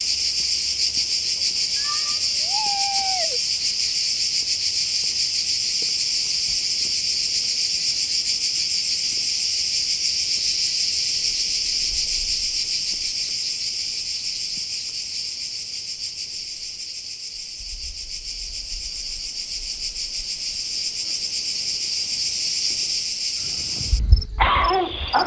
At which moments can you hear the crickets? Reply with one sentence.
You can hear the crickets from 0.0 to 25.2 s.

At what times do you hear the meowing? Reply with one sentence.
You can hear the meowing from 1.8 to 3.4 s.